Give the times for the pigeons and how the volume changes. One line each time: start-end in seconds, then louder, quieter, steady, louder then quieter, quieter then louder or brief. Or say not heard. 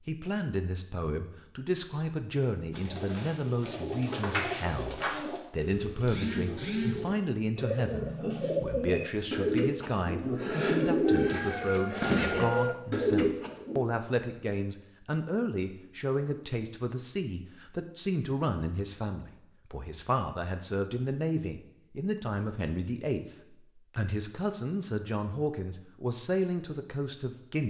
2.7-13.8 louder.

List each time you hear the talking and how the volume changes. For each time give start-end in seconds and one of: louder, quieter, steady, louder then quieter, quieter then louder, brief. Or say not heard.
0.1-27.6 steady.